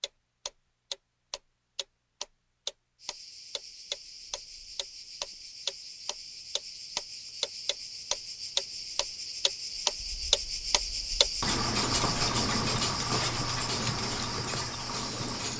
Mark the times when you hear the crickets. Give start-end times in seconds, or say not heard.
3.0-15.5.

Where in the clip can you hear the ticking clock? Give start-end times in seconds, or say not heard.
0.0-15.5.